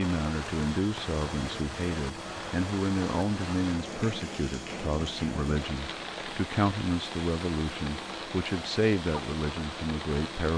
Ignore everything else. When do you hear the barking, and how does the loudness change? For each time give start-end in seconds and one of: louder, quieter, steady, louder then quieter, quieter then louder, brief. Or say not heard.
not heard.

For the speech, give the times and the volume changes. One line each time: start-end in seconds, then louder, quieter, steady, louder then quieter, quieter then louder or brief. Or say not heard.
0.0-10.5 steady.